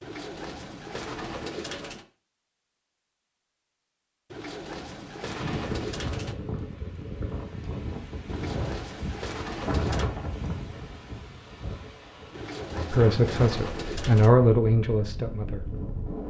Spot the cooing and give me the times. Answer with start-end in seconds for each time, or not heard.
0.0-2.0, 4.3-6.3, 8.2-10.1, 12.3-14.3.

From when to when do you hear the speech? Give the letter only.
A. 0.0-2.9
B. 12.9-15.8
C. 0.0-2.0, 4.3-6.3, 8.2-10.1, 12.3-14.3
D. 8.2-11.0
B.